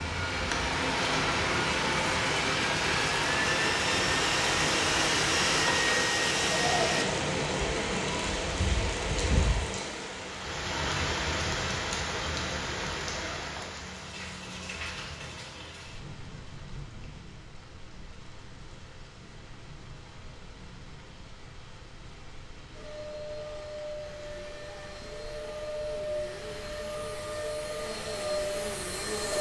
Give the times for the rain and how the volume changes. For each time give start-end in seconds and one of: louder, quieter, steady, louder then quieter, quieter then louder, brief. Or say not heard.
0.0-29.3 quieter.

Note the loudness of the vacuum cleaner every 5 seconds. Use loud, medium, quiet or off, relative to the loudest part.
loud, loud, off, off, quiet, medium.